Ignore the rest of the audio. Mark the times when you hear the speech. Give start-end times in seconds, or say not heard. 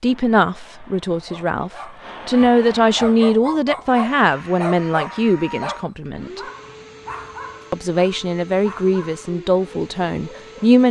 0.0-6.4, 7.7-10.8.